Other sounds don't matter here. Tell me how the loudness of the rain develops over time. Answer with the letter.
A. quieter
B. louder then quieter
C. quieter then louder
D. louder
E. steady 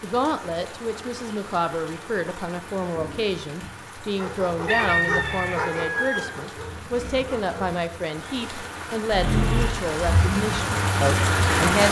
D.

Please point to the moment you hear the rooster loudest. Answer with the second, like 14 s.
5 s.